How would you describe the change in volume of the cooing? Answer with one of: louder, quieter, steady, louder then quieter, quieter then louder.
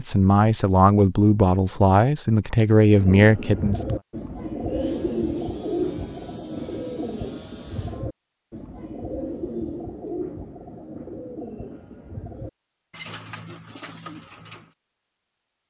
quieter.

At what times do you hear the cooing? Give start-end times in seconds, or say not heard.
2.9-14.8.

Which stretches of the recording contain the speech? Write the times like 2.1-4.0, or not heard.
0.0-3.8.